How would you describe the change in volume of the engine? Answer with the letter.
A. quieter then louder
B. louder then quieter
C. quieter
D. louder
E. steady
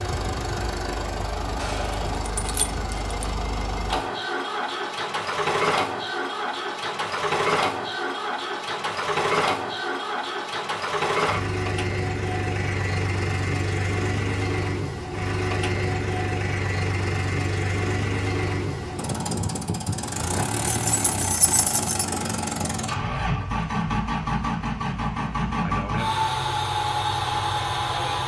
E.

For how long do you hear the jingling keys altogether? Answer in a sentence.
The jingling keys can be heard for 3 seconds in total.